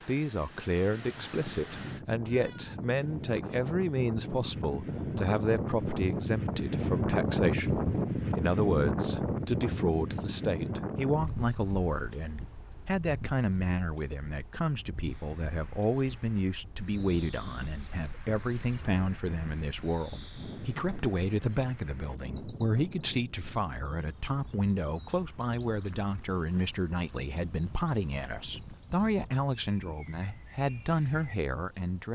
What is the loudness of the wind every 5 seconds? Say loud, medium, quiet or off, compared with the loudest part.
medium, loud, medium, quiet, quiet, quiet, quiet.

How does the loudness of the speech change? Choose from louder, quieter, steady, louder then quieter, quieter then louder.
steady.